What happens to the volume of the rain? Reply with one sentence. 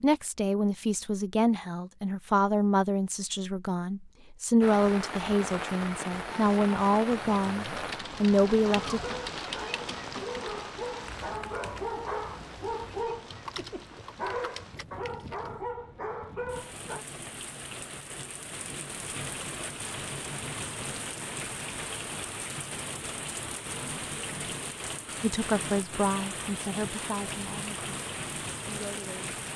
The volume of the rain goes down, then up.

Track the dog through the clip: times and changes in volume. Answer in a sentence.
You can hear the dog from 8.7 to 17.1 s, at a steady volume.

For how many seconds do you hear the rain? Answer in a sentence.
The rain can be heard for 25 seconds in total.